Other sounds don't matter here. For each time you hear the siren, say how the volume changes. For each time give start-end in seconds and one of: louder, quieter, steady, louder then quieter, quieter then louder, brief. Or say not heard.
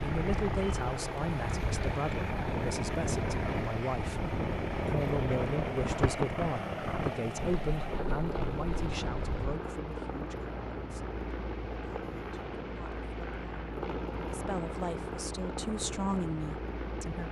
not heard.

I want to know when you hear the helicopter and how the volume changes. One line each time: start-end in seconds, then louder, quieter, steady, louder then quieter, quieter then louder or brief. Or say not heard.
0.0-17.2 steady.